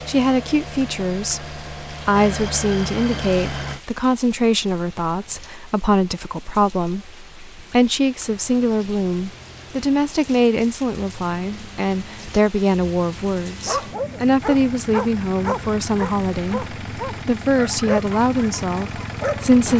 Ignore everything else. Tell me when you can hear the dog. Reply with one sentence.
The dog can be heard from 13.7 to 19.6 s.